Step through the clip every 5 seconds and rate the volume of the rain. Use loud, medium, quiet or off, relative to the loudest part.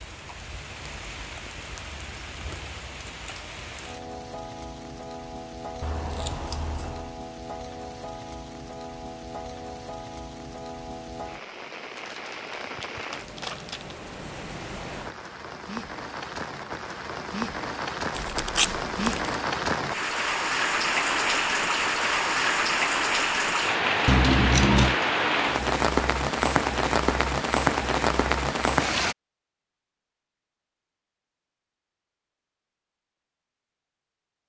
quiet, quiet, quiet, medium, loud, loud, off.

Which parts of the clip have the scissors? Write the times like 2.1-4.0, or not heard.
5.8-7.1, 24.1-24.9.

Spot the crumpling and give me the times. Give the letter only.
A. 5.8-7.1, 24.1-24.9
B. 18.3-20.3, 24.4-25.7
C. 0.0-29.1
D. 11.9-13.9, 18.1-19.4
D.